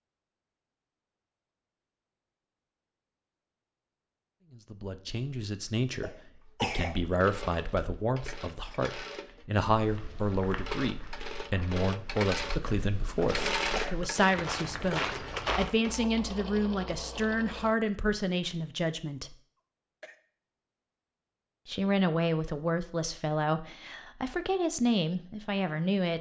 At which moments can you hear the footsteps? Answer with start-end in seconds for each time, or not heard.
9.8-15.7.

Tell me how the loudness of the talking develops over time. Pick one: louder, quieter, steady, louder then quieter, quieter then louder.
steady.